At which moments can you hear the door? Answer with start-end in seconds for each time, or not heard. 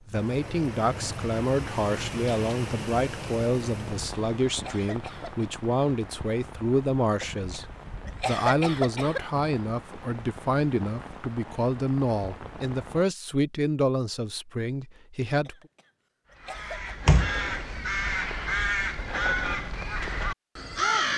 17.1-18.1.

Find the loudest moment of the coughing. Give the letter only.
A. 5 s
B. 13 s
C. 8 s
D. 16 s
C.